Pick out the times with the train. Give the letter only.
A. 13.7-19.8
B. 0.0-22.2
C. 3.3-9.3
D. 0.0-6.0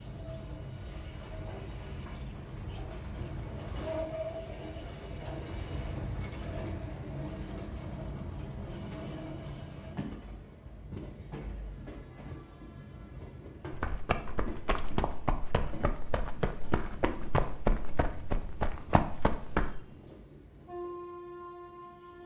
B.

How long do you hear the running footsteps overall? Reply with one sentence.
You can hear the running footsteps for 6 seconds altogether.